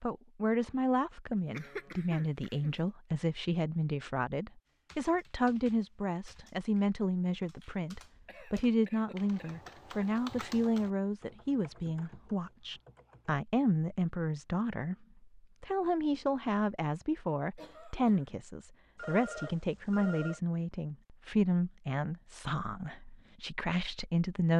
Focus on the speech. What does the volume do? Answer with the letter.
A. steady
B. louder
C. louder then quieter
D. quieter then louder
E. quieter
A.